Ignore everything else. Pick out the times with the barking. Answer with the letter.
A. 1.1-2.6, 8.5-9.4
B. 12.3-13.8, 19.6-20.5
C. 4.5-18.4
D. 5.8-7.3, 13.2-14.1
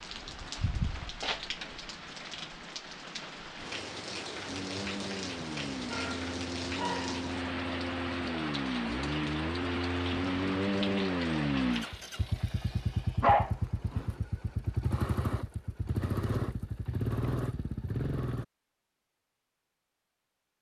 D.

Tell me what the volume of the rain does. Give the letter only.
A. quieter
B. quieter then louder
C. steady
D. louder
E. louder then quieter
C.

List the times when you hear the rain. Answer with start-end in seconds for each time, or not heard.
0.0-12.0.